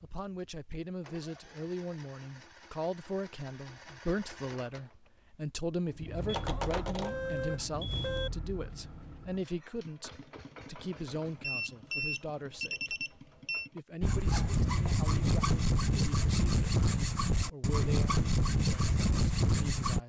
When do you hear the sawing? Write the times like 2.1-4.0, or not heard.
14.0-20.0.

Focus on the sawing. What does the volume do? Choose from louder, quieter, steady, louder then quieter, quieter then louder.
steady.